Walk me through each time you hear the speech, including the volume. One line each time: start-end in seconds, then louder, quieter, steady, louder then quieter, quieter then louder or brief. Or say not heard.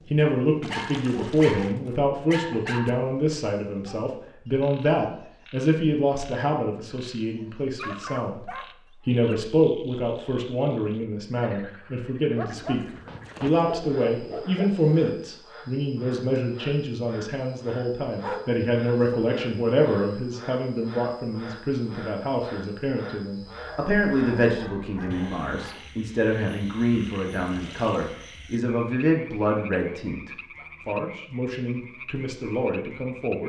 0.0-33.4 steady.